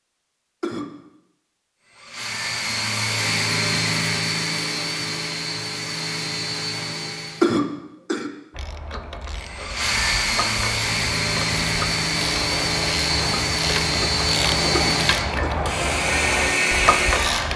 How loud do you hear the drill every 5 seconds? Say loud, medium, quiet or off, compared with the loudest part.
loud, medium, loud, loud.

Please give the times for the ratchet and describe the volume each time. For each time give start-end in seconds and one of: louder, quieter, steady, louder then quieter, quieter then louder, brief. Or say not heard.
8.5-17.5 louder.